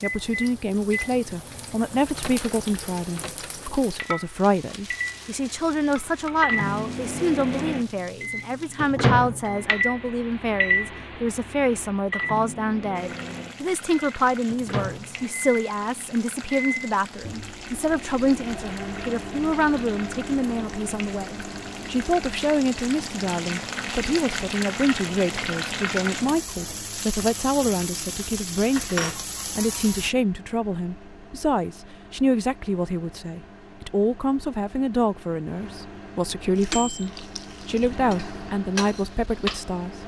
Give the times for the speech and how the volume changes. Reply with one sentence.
You can hear the speech from 0.0 to 40.0 s, at a steady volume.